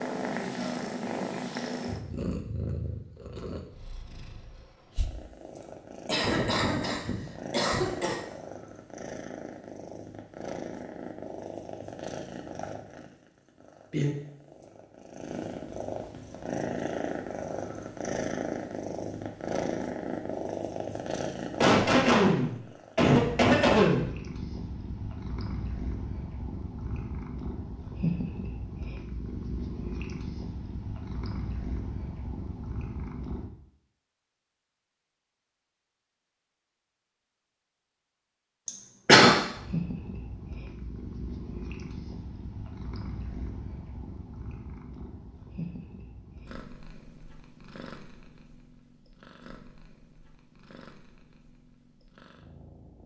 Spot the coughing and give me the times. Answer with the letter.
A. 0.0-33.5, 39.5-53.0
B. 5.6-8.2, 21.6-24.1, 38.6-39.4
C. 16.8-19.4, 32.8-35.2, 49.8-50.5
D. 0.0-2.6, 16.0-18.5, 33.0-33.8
B.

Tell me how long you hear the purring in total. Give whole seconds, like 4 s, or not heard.
47 s.